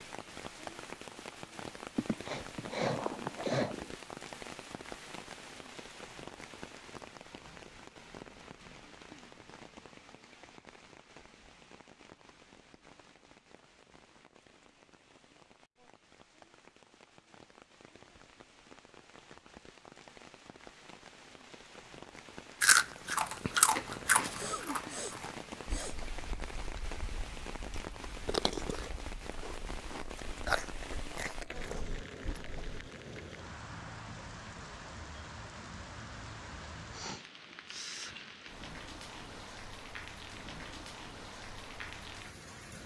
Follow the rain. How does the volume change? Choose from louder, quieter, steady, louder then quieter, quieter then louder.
quieter then louder.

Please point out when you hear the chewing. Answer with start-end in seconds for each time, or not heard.
22.6-32.7.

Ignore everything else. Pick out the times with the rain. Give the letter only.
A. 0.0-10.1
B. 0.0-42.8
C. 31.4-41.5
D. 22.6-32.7
B.